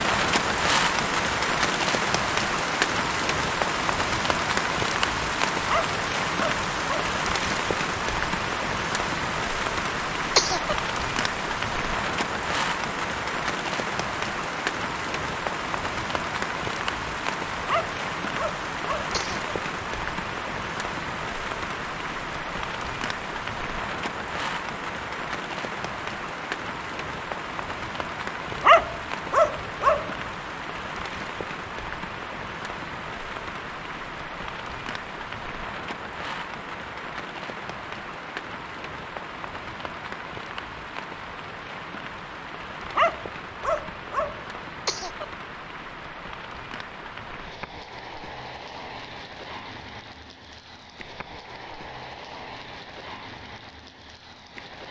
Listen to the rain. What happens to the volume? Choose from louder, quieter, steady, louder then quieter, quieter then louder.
quieter.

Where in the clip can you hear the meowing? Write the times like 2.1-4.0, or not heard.
not heard.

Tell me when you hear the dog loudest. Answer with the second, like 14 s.
29 s.